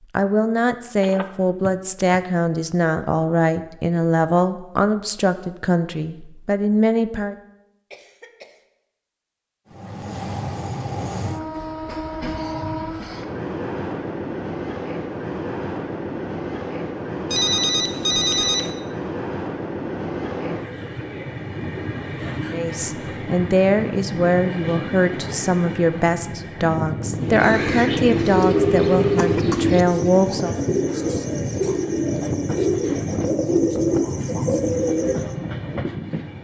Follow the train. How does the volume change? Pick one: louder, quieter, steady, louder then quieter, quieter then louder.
steady.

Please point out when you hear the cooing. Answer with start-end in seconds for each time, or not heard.
27.1-35.4.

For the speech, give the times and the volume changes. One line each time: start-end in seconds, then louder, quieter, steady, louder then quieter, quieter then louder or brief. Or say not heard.
0.1-7.3 steady
22.5-30.6 steady.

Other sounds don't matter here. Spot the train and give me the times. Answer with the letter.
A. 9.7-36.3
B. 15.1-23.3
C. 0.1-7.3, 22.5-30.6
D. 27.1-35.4
A.